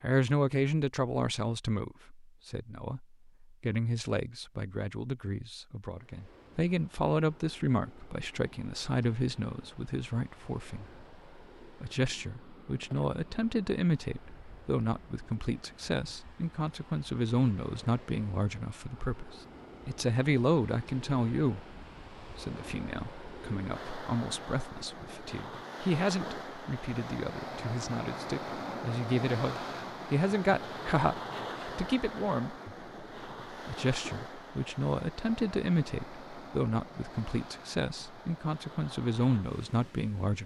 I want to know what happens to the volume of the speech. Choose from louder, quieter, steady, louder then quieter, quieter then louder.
steady.